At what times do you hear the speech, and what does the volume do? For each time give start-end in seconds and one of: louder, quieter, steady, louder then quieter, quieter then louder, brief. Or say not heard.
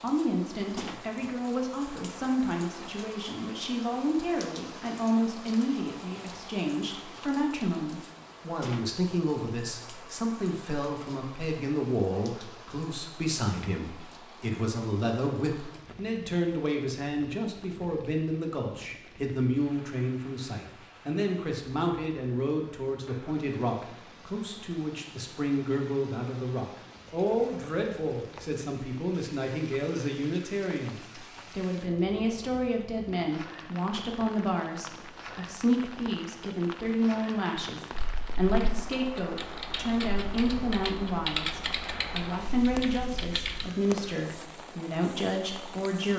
0.0-46.1 steady.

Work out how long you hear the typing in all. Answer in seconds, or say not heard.
6 s.